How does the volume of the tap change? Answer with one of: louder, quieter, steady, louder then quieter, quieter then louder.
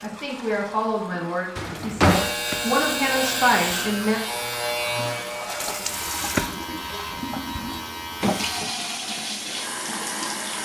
louder.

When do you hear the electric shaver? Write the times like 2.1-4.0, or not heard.
2.0-8.6.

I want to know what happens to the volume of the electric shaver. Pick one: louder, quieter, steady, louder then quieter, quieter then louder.
quieter.